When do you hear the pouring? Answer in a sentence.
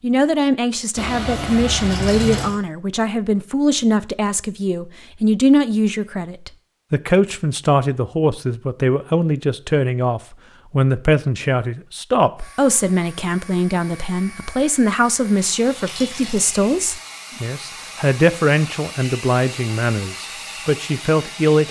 The pouring can be heard from 0.9 to 2.5 s and from 15.1 to 16.5 s.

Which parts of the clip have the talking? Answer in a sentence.
You can hear the talking from 0.0 to 21.6 s.